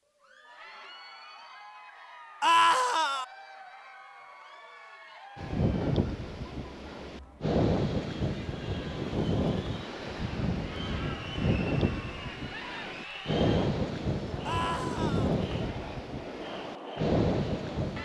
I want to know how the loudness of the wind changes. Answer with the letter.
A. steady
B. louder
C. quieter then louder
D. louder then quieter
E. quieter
A.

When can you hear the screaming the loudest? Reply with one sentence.
The volume of the screaming peaks at 3 seconds.